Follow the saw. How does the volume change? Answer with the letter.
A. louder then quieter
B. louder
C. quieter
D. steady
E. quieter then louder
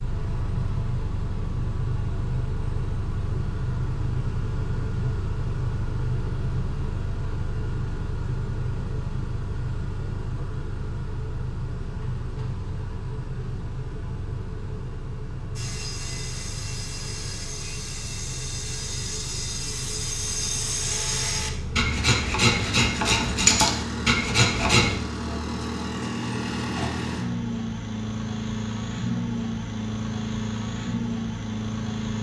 B.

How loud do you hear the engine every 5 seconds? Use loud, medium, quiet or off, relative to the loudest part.
loud, loud, medium, medium, loud, loud, loud.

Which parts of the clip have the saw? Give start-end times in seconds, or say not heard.
15.6-24.9.